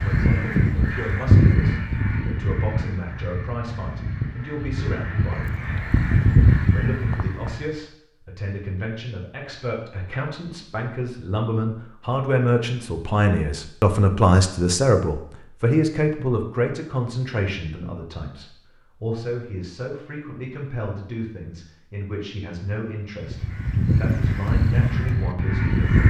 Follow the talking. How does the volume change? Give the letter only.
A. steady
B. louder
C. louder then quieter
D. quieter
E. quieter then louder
C.